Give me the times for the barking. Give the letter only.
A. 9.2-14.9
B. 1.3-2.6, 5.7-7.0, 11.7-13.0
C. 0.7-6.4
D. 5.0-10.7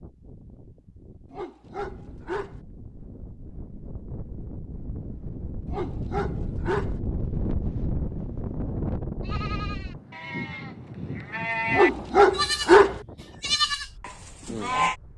B.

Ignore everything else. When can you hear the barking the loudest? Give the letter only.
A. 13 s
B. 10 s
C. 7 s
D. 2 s
A.